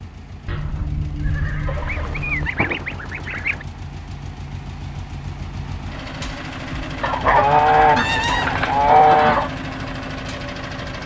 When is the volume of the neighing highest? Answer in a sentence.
The loudest moment of the neighing is at 8 seconds.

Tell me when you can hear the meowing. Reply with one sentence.
The meowing can't be heard in this clip.